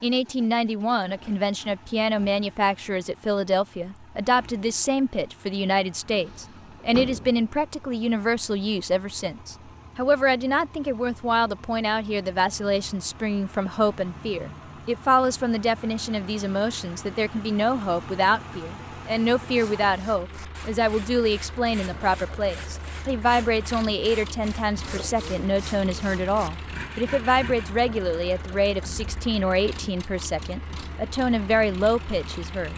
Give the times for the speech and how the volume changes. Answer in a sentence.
The speech can be heard from 0.0 to 32.7 s, at a steady volume.